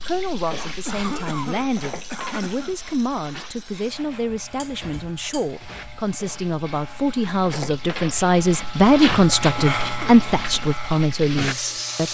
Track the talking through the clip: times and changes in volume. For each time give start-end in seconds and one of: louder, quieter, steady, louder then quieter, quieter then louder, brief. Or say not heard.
0.1-12.1 louder.